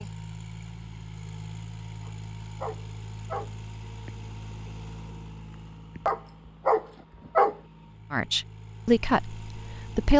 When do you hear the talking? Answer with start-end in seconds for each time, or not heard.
8.1-10.1.